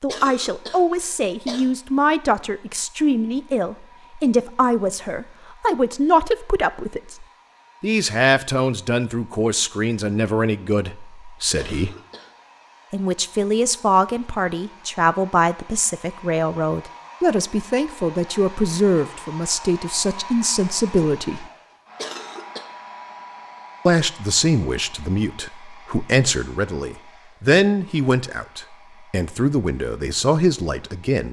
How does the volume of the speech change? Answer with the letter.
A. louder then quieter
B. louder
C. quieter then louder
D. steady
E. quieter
D.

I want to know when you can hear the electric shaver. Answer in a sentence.
The electric shaver can't be heard in this clip.